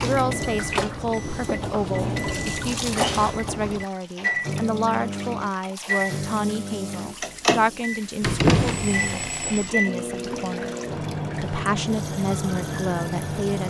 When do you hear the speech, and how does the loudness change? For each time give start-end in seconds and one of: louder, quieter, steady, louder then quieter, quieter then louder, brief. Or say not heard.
0.0-10.8 steady
11.4-13.6 brief.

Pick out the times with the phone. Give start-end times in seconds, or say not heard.
8.2-9.7.